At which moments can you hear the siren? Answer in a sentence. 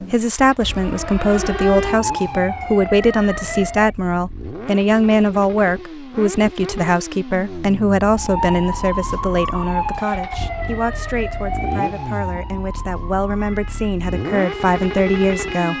You can hear the siren from 0.0 to 4.0 s and from 8.2 to 15.7 s.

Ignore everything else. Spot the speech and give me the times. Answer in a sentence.
The speech can be heard from 0.1 to 15.7 s.